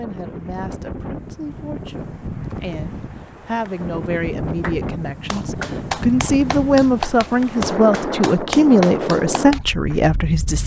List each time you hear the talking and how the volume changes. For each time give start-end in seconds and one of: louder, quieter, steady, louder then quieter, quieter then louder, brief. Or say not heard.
0.0-10.6 louder.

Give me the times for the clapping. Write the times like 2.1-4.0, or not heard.
4.6-10.1.